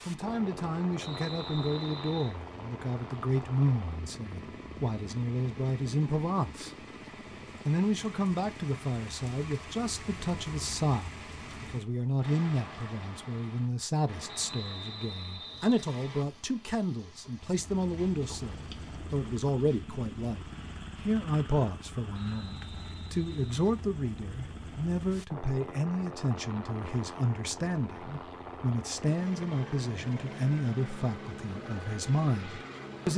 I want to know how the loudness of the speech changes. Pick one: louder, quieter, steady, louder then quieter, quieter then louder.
steady.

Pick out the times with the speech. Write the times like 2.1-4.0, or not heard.
0.1-6.7, 7.7-33.1.